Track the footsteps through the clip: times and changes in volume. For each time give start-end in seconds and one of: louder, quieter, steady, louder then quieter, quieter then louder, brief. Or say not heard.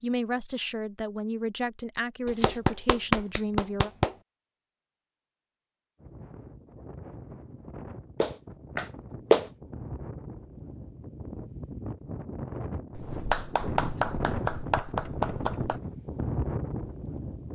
not heard.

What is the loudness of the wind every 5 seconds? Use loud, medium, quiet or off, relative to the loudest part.
off, medium, loud, loud.